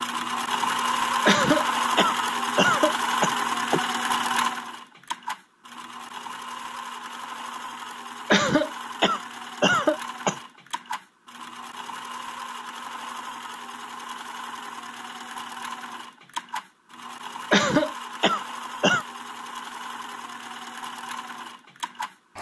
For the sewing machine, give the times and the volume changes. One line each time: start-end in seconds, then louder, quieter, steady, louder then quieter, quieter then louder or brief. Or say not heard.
0.0-22.3 quieter.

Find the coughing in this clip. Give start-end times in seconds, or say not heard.
1.2-3.9, 8.3-10.3, 17.5-19.1.